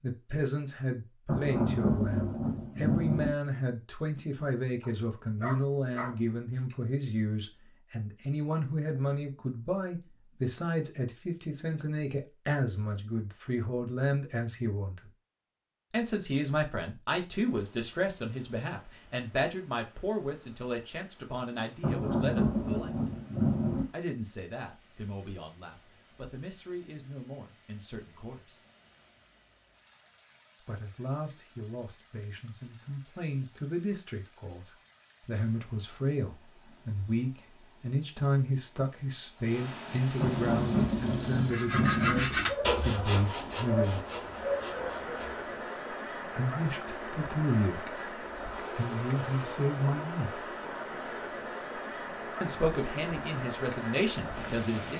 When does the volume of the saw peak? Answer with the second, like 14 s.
42 s.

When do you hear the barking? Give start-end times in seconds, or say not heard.
4.8-6.8, 42.5-45.2.